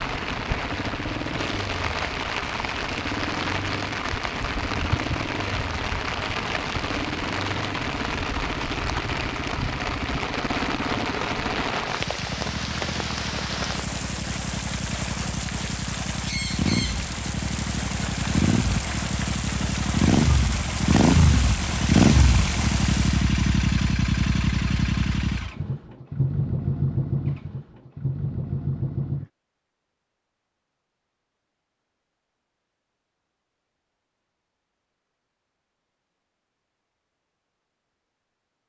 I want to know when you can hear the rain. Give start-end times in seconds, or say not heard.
0.0-23.3.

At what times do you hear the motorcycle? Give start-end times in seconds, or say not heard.
0.0-29.3.